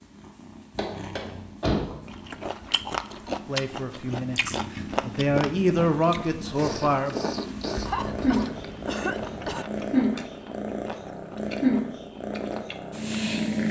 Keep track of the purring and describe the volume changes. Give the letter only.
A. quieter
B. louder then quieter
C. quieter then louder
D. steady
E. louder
E.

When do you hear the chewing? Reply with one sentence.
You can hear the chewing from 2.0 to 13.0 s.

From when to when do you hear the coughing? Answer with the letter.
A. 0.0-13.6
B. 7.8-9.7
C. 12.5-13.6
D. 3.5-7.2
B.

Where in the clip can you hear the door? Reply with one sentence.
You can hear the door from 0.8 to 1.9 s.